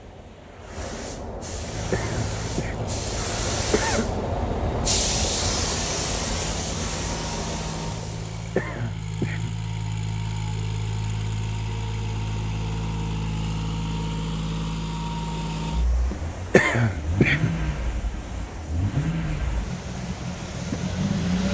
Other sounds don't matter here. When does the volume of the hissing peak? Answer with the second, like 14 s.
5 s.